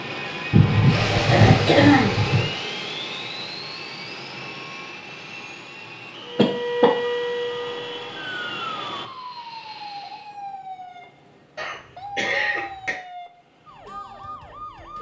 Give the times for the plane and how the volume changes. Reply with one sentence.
You can hear the plane from 0.0 to 10.3 s, getting quieter.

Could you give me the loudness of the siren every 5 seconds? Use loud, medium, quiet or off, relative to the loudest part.
off, loud, medium.